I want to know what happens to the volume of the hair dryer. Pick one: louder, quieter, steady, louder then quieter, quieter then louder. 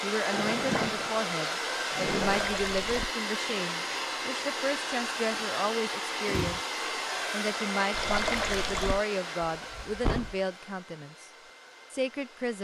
quieter.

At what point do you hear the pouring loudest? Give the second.
8 s.